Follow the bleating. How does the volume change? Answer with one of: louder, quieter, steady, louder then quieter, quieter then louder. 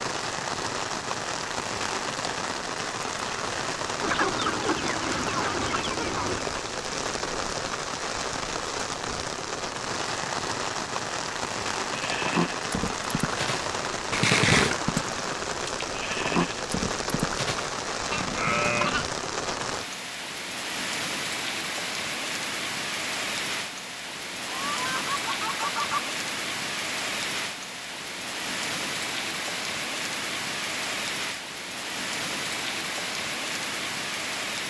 louder then quieter.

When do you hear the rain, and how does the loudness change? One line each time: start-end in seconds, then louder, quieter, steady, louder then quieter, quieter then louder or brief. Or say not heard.
0.0-34.6 steady.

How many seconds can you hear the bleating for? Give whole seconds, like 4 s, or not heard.
7 s.